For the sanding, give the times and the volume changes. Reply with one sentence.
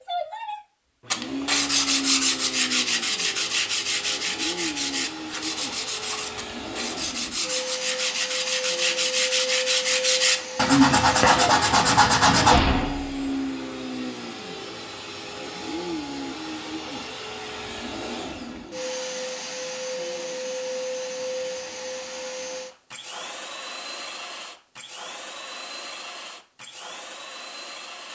The sanding can be heard from 1.1 to 12.6 s, getting quieter then louder.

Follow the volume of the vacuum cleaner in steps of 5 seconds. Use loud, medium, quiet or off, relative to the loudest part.
loud, loud, loud, loud, loud, medium.